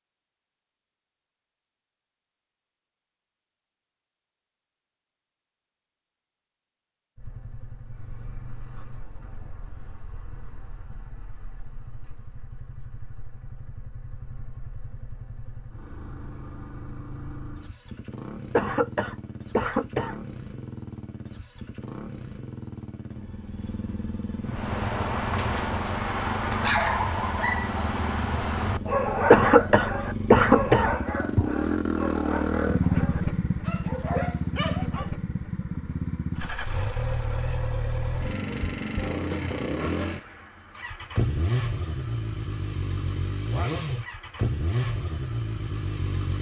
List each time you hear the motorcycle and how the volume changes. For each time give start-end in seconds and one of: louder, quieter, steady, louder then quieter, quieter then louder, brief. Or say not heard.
7.2-46.3 louder.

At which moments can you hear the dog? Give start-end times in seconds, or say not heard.
24.4-35.1.